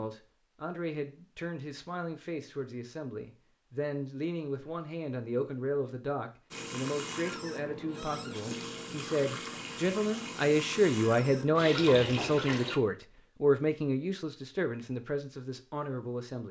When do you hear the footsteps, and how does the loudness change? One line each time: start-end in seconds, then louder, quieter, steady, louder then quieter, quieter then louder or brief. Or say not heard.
not heard.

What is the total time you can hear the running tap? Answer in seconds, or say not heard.
6 s.